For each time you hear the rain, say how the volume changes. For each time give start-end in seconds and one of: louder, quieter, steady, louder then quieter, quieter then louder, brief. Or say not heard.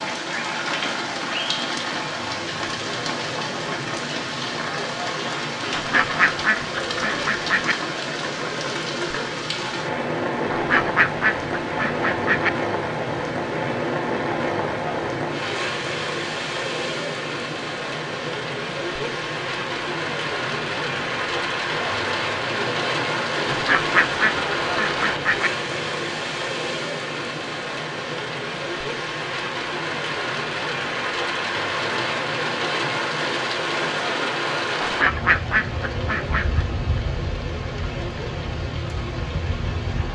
0.0-40.0 steady.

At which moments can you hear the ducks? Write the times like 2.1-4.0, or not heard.
5.7-7.8, 10.5-12.5, 23.5-25.5, 34.8-36.6.